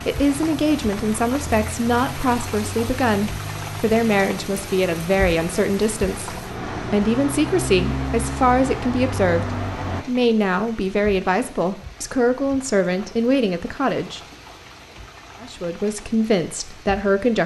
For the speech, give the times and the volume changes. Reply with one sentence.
You can hear the speech from 0.1 to 14.2 s, at a steady volume; and briefly from 15.4 to 17.4 s.